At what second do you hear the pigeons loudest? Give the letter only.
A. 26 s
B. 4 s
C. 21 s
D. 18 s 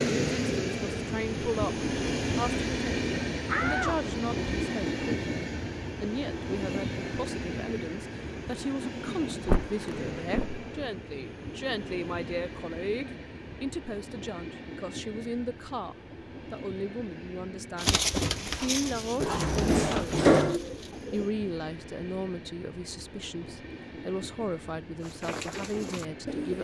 D.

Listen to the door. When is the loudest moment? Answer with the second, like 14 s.
20 s.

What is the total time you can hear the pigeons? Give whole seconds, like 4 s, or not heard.
5 s.